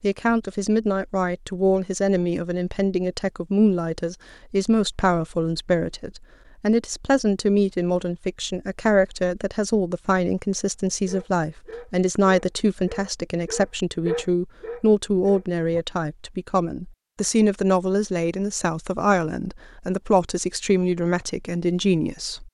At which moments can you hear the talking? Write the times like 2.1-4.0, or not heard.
0.0-22.4.